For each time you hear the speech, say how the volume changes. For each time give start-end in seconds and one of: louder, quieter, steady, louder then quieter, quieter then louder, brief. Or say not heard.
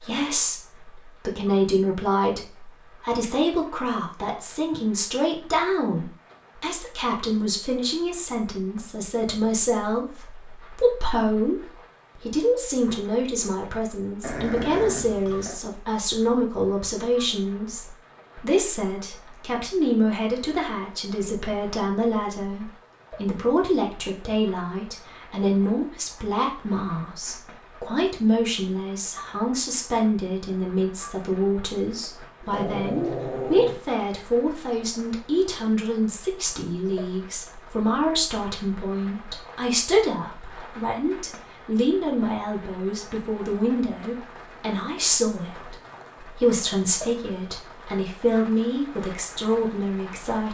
0.0-50.4 steady.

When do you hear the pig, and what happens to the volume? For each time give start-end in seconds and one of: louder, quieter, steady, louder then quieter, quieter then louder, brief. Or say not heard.
not heard.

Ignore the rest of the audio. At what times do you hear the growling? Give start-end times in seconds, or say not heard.
14.2-15.6, 32.4-33.9.